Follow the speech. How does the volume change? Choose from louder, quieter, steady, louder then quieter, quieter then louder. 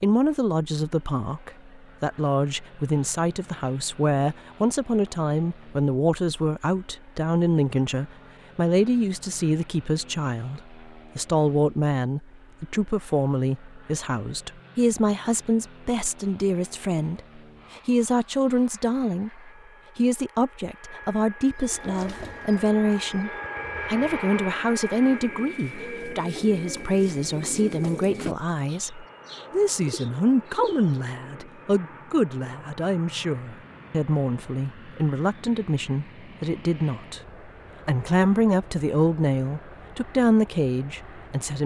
steady.